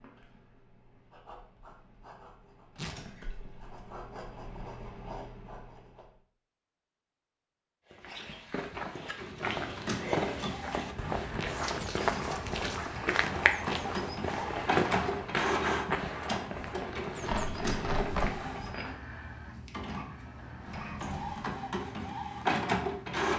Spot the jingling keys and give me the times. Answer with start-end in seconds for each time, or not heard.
2.8-3.7, 20.6-21.5.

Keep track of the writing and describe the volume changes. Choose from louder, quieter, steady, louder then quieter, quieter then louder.
louder.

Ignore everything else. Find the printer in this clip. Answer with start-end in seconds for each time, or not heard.
9.2-23.3.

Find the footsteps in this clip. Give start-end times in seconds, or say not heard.
7.9-19.0.